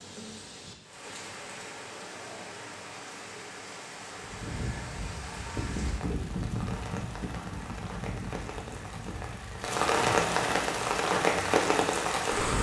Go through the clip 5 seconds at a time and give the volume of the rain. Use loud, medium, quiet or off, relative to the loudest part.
quiet, medium, loud.